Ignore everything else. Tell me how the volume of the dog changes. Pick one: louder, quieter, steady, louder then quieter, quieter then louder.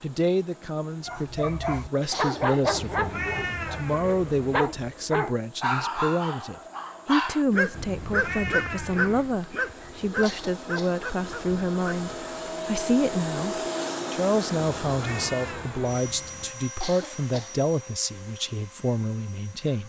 quieter.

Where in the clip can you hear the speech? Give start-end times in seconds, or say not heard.
0.0-19.8.